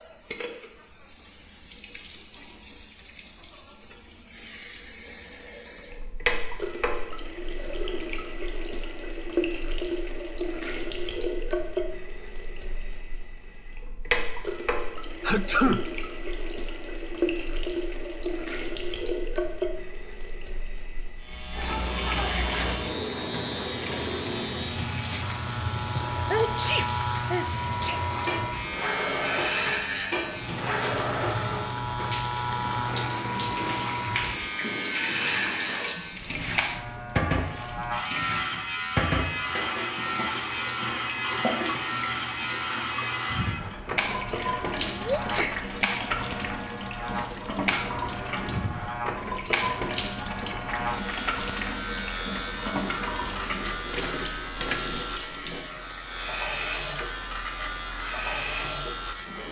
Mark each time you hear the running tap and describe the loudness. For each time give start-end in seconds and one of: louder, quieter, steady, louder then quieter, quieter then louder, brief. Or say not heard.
0.0-59.4 steady.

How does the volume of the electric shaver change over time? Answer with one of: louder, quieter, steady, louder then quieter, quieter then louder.
steady.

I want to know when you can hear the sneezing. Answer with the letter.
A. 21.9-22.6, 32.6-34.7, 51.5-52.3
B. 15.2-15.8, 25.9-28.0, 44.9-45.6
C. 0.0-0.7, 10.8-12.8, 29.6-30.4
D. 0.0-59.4
B.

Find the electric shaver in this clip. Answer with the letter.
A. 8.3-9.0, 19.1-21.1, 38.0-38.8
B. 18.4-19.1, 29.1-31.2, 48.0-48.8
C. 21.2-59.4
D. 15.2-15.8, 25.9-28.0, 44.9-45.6
C.